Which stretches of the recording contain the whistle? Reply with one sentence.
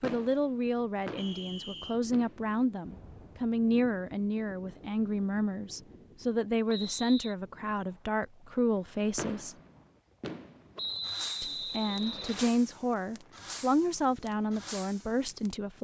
The whistle can be heard from 1.1 to 2.0 s, from 6.7 to 7.3 s and from 10.8 to 12.6 s.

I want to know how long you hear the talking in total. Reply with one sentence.
The talking can be heard for 14 seconds in total.